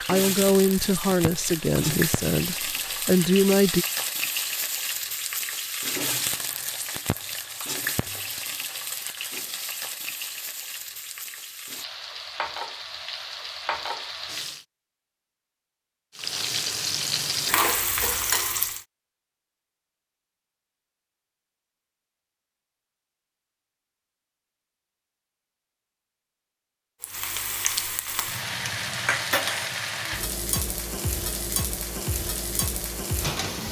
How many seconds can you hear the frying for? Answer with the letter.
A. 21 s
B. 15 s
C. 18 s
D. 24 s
D.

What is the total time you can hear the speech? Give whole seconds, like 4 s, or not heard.
4 s.